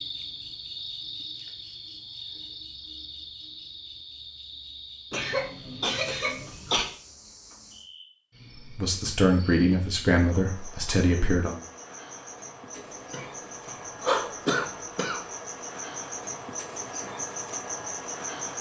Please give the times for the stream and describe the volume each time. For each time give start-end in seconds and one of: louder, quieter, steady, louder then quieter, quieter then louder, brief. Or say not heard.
not heard.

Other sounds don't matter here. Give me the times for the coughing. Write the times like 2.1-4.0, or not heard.
5.1-6.8, 12.8-15.2.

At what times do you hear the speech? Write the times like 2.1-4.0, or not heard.
8.7-11.6.